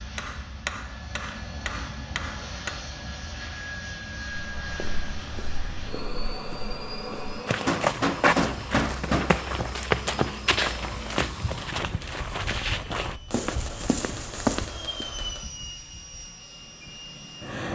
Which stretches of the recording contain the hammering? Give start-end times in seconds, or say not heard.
0.1-2.8, 7.7-9.3, 13.2-15.5.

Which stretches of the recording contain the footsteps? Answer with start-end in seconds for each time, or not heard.
4.5-15.1.